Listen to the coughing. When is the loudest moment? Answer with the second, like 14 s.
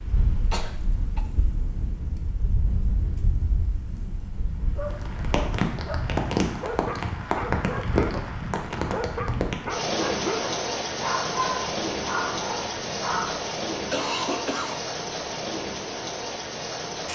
14 s.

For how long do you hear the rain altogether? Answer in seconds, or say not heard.
17 s.